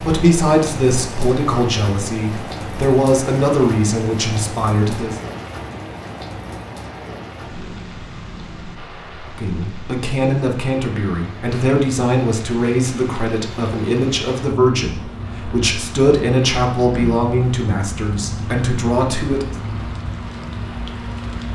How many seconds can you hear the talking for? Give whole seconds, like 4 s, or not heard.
15 s.